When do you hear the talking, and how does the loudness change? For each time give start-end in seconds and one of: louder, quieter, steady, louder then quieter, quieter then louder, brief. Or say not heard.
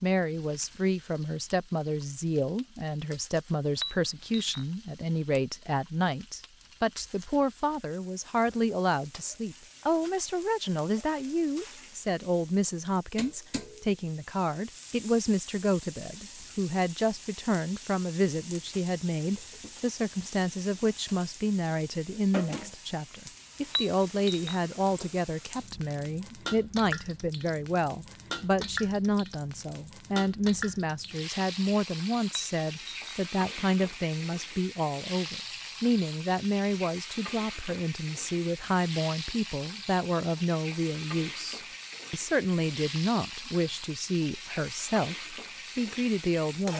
0.0-46.7 steady.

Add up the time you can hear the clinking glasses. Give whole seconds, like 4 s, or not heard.
3 s.